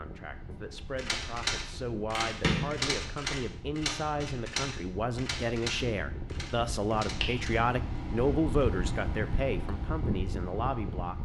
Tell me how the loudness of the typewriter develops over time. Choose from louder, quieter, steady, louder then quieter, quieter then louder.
quieter.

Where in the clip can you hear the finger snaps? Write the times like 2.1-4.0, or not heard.
2.1-2.8, 7.0-8.3.